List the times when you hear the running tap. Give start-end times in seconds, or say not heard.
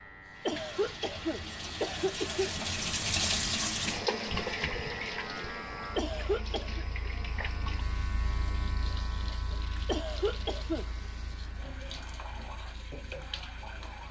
0.0-14.0.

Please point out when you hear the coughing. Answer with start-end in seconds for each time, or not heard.
0.5-2.6, 6.0-6.8, 9.8-10.8.